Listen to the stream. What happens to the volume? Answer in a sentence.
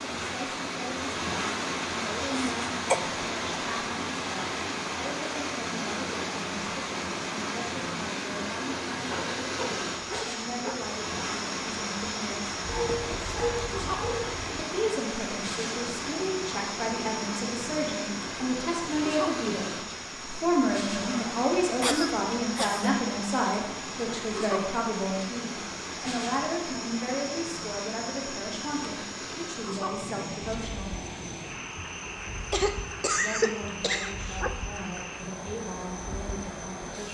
The loudness of the stream goes down.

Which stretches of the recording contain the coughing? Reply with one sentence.
The coughing can be heard from 2.3 to 3.0 s, from 21.8 to 22.9 s and from 32.5 to 34.4 s.